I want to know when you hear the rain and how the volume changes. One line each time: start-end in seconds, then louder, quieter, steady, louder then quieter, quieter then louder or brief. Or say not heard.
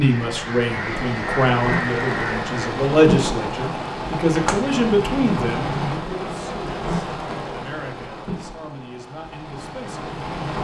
0.0-10.5 quieter.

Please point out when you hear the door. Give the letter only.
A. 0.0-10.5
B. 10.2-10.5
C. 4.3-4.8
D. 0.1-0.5
C.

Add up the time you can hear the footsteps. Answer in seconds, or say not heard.
not heard.